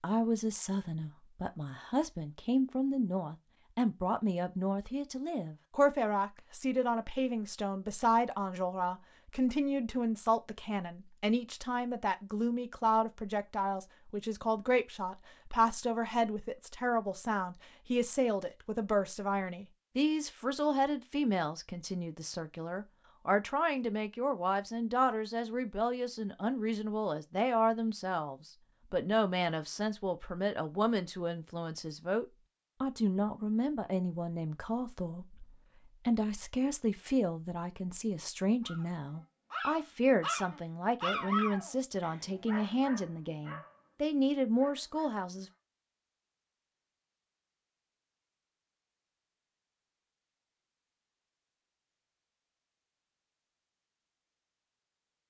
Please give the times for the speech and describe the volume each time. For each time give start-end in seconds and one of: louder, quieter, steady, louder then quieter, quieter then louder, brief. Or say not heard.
0.0-45.5 steady.